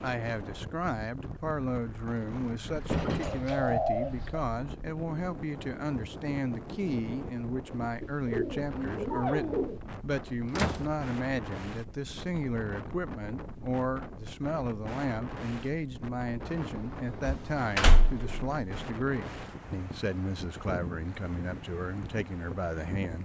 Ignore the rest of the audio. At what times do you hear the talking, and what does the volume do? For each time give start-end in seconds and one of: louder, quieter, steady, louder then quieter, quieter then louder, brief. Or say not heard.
0.0-23.2 steady.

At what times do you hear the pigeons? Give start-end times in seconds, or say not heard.
2.8-4.4, 8.0-9.8, 16.5-18.4.